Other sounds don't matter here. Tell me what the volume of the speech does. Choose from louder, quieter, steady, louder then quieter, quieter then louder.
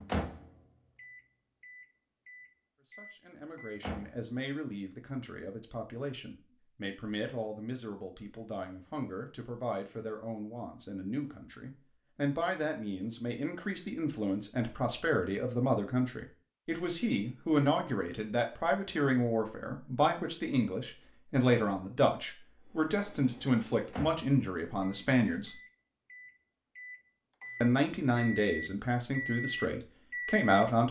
louder.